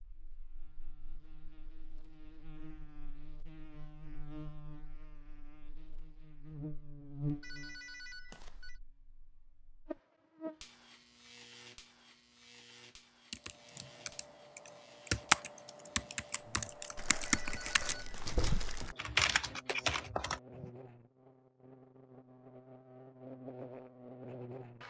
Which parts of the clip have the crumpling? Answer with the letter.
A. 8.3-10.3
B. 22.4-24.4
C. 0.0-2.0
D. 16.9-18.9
D.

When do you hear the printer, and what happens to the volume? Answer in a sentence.
The printer can't be heard in this clip.